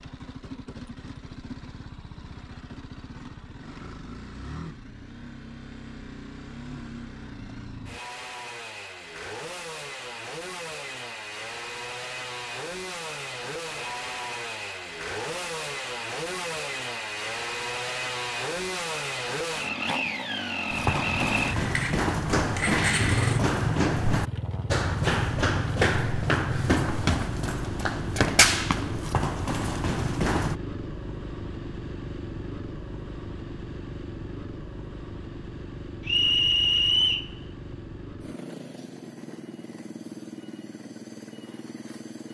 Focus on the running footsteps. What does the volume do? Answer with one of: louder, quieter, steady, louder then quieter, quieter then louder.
steady.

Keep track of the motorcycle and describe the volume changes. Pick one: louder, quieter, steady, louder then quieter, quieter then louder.
louder then quieter.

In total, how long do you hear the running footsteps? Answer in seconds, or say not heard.
10 s.